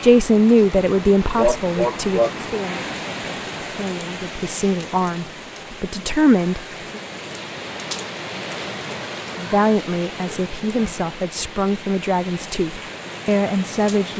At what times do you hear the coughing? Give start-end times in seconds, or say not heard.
1.4-2.3.